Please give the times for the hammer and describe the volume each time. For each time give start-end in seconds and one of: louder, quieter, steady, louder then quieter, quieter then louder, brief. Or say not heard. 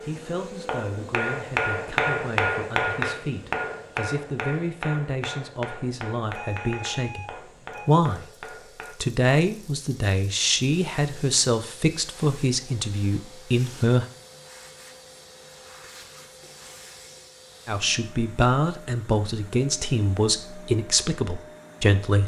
0.0-8.9 quieter.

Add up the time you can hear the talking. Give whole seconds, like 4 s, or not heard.
18 s.